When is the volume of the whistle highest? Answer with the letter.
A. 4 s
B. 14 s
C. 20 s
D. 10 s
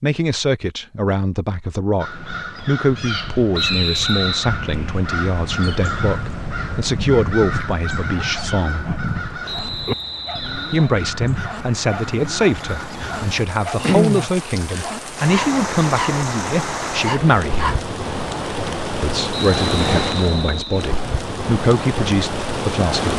A.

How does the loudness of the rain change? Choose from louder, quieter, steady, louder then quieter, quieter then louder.
louder.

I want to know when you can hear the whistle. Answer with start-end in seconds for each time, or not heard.
3.5-4.5, 9.4-10.9, 19.3-20.9.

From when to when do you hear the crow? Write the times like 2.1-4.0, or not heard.
1.9-13.2.